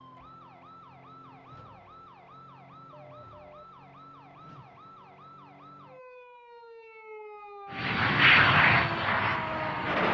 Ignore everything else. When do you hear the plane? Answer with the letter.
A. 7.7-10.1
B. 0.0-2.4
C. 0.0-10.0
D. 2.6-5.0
A.